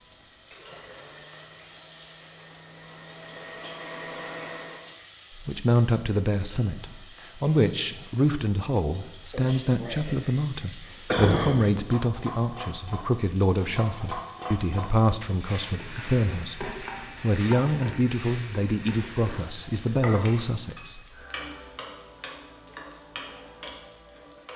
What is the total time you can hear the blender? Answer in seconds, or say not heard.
5 s.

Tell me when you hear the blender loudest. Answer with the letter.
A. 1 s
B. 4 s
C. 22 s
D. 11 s
B.